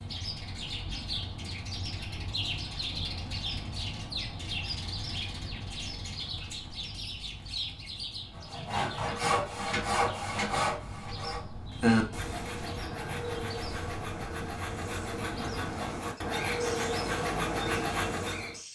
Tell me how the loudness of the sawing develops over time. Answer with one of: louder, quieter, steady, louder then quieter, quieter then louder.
quieter then louder.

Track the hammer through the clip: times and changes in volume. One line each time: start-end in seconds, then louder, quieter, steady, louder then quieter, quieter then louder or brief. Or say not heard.
not heard.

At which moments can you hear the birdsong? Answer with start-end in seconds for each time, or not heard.
0.0-18.7.